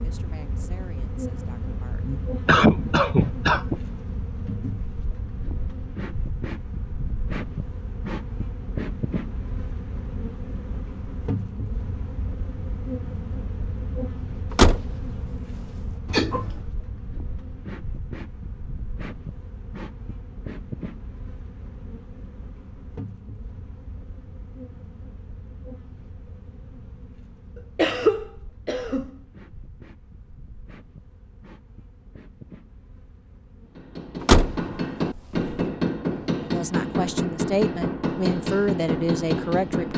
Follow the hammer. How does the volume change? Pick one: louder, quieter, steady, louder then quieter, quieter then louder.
steady.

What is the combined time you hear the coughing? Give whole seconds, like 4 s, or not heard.
3 s.